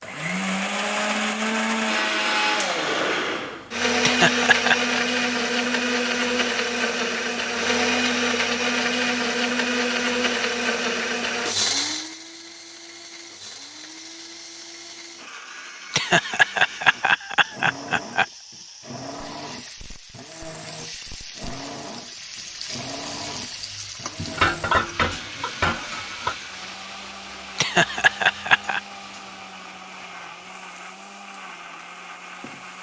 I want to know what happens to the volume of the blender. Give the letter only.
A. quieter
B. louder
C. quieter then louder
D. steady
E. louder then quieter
A.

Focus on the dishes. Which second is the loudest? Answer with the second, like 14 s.
25 s.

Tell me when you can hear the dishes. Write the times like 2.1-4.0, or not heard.
24.1-26.4.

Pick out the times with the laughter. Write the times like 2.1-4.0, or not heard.
4.0-5.0, 15.9-18.2, 27.6-28.8.